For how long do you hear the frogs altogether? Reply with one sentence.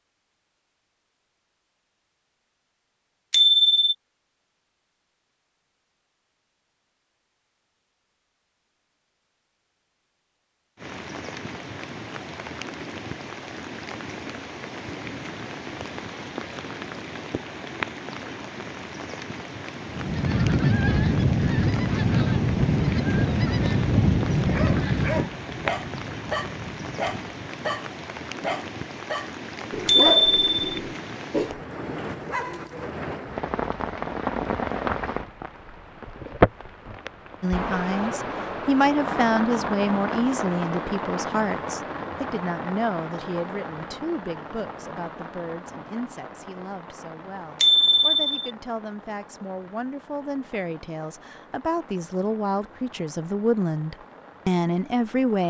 You can't hear the frogs here.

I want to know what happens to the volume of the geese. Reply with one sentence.
The volume of the geese goes down.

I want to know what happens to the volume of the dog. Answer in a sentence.
The loudness of the dog stays about the same.